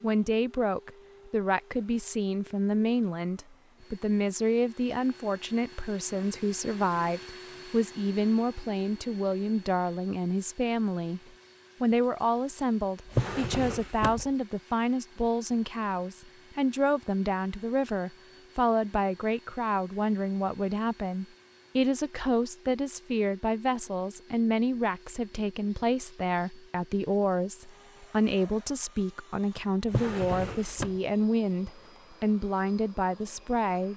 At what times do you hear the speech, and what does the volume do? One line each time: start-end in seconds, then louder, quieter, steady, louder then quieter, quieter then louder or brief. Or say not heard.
0.0-11.2 steady
11.8-33.9 steady.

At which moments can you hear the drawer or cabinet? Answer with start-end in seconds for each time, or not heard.
13.1-14.3, 29.9-30.9.